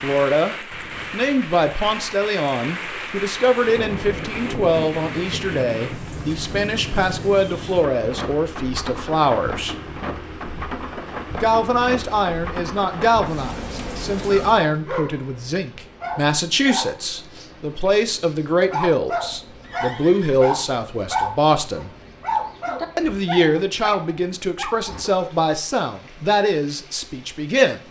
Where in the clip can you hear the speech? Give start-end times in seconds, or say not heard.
0.0-9.8, 11.3-21.9, 22.9-27.8.